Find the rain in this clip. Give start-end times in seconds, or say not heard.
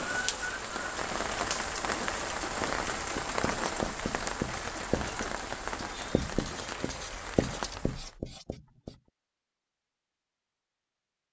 0.0-8.2.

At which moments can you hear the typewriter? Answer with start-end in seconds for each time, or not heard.
not heard.